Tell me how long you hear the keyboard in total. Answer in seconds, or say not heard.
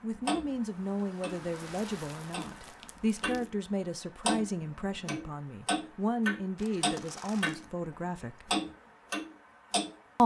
not heard.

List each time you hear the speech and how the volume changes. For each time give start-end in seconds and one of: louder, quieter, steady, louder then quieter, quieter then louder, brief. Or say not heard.
0.0-8.5 steady.